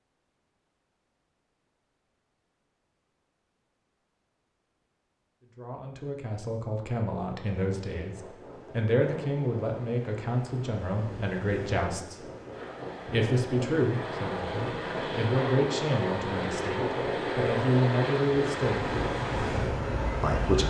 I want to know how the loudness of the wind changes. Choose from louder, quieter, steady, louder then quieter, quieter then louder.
louder.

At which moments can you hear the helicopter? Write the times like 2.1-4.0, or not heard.
12.5-20.6.